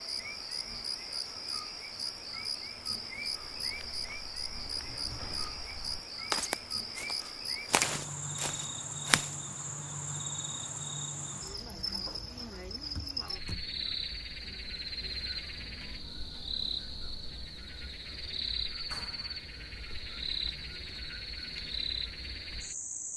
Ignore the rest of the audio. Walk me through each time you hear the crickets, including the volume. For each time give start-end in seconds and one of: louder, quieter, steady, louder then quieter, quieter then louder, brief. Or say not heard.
0.0-23.1 steady.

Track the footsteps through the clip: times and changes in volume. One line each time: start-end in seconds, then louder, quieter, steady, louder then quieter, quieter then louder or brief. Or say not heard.
3.2-9.3 louder then quieter.